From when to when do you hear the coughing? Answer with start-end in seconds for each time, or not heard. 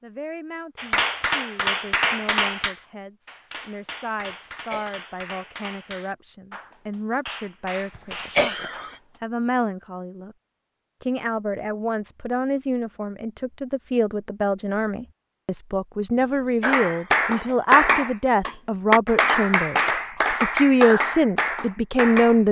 4.3-5.2, 8.0-8.9, 16.2-17.6.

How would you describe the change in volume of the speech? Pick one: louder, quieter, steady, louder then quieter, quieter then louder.
louder.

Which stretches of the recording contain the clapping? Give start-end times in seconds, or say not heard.
0.8-9.2, 16.6-22.4.